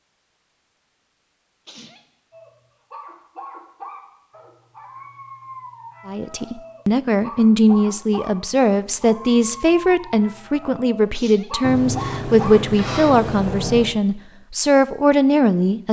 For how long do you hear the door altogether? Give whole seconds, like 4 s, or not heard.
2 s.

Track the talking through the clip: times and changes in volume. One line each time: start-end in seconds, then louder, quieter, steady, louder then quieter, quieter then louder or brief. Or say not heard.
6.0-15.8 steady.